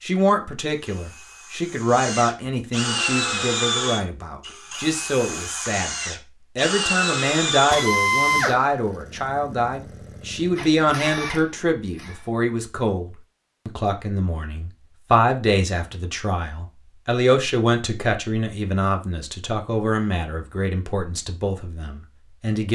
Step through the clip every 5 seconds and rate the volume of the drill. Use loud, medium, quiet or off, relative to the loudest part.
loud, loud, medium, off, off.